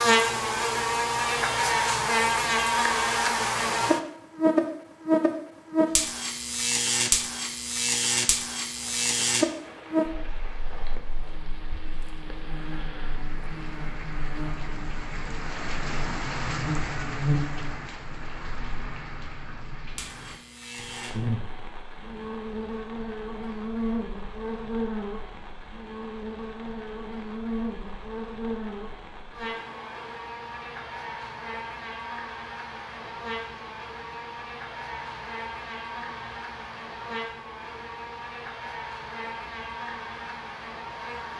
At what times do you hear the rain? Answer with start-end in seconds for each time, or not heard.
8.7-41.3.